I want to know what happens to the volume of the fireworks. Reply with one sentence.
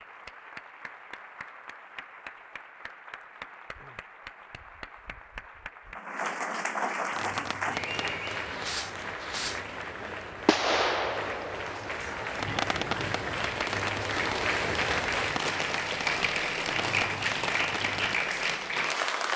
The loudness of the fireworks goes up, then down.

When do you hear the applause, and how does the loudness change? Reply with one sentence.
The applause can be heard from 0.0 to 19.3 s, getting louder.